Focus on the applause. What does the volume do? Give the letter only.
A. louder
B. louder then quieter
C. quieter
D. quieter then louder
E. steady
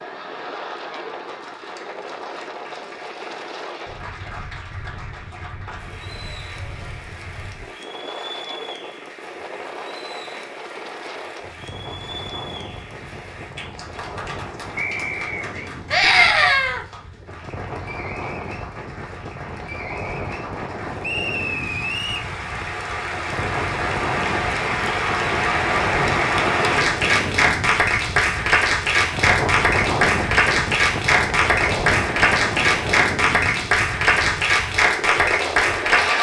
A.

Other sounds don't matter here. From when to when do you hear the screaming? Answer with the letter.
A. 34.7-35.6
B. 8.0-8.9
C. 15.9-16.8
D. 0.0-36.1
C.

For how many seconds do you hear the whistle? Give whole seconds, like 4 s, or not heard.
2 s.